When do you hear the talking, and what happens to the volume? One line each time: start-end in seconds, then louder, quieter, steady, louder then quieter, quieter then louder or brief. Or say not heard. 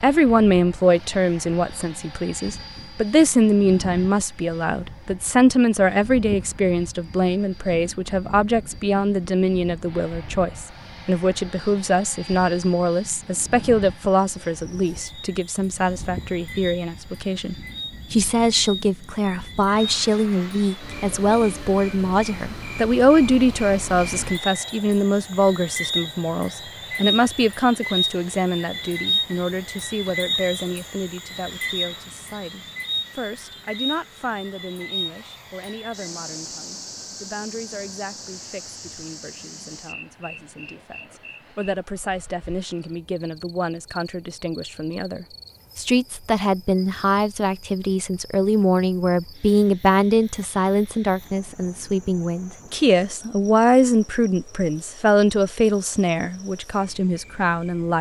0.0-57.9 quieter then louder.